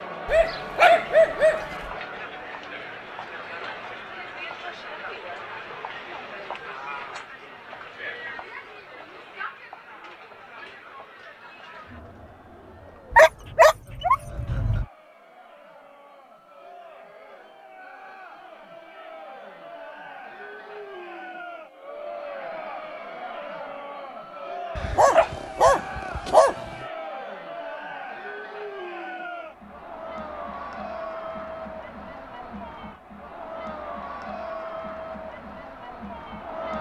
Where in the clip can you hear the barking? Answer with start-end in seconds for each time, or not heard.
0.2-1.6, 13.1-14.8, 24.8-26.7.